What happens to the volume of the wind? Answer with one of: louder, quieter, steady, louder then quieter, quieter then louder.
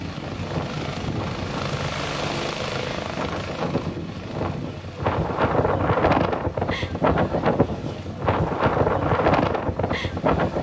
louder.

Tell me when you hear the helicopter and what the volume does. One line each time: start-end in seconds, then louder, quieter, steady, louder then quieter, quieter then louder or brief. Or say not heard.
0.0-10.5 quieter.